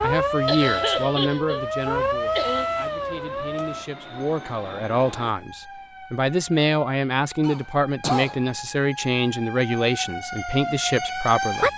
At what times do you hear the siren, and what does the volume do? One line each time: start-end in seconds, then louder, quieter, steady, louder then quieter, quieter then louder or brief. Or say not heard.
0.0-11.7 quieter then louder.